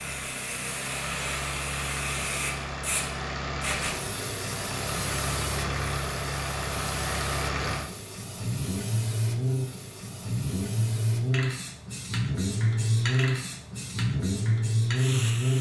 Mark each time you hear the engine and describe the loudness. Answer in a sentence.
The engine can be heard from 0.0 to 15.5 s, getting louder.